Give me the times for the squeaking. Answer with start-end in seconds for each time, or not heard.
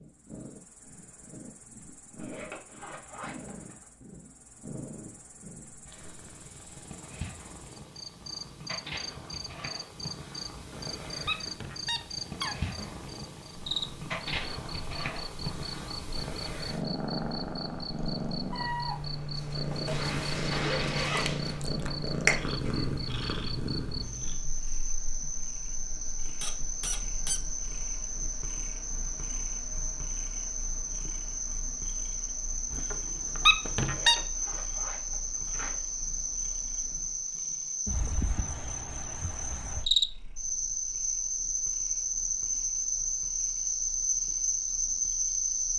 10.5-13.1, 26.4-27.4, 32.7-34.1.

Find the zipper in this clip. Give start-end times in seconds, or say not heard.
2.1-3.9, 19.9-21.6, 33.8-35.8.